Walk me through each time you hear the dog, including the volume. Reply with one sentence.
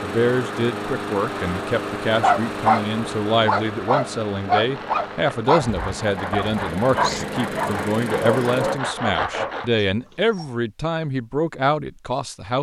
You can hear the dog briefly from 2.2 to 2.9 s; and from 3.5 to 10.5 s, getting quieter.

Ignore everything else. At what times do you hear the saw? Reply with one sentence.
The saw can be heard from 4.6 to 9.8 s.